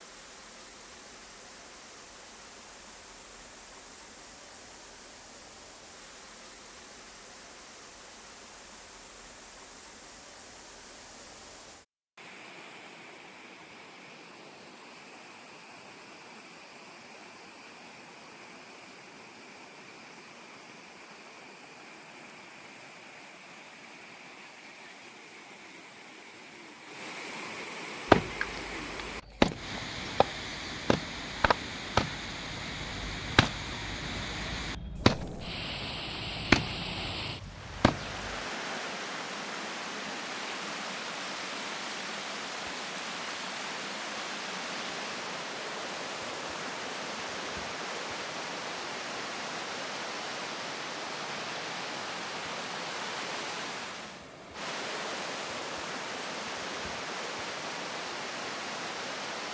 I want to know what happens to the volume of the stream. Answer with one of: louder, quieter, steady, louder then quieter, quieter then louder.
louder.